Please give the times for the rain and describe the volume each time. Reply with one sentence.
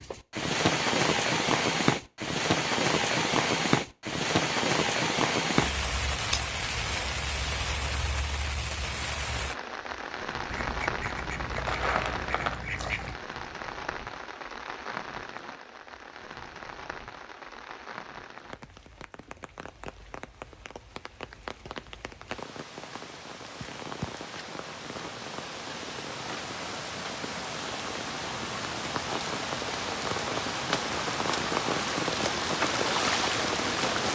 The rain can be heard from 0.0 to 34.0 s, getting quieter then louder.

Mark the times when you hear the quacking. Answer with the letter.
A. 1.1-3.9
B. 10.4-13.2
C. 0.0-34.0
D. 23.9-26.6
B.